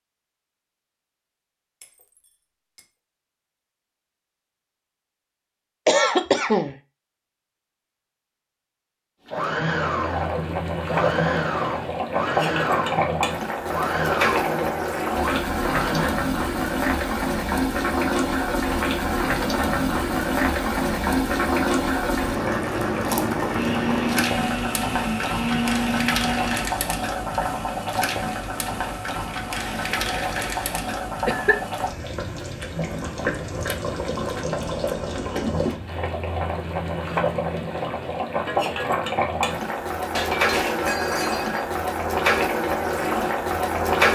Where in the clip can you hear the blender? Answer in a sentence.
You can hear the blender from 9.3 to 16.1 s and from 23.5 to 26.7 s.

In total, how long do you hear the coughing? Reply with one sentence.
You can hear the coughing for 3 seconds altogether.